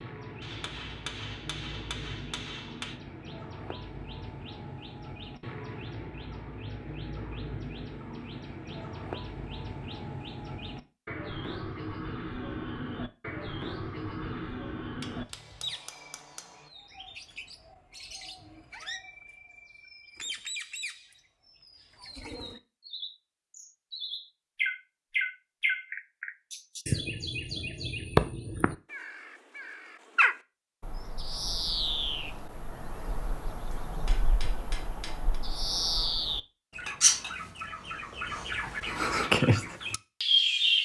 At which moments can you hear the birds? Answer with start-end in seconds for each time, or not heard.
0.0-40.7.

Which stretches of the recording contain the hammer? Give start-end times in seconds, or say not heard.
0.4-3.0, 15.0-16.7, 33.7-35.4.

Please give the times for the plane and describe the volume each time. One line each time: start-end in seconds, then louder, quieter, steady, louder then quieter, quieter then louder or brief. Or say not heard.
not heard.